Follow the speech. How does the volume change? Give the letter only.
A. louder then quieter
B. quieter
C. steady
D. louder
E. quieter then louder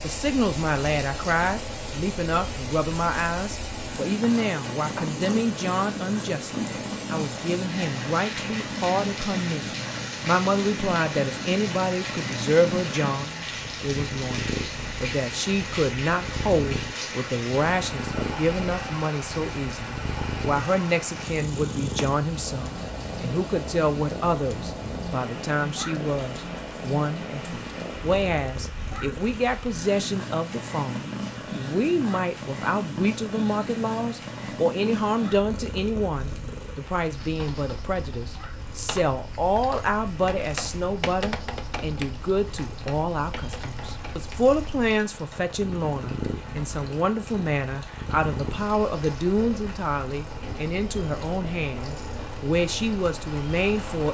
C.